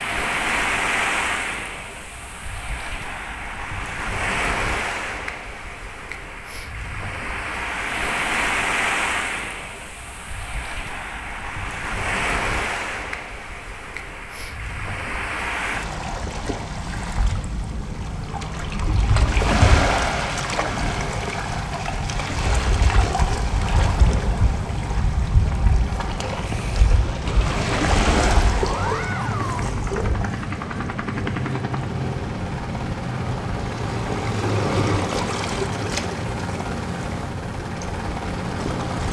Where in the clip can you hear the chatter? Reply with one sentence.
The chatter can't be heard in this clip.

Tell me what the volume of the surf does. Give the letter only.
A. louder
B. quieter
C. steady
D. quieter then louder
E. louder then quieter
C.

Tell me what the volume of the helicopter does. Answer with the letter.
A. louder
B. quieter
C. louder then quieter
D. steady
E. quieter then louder
D.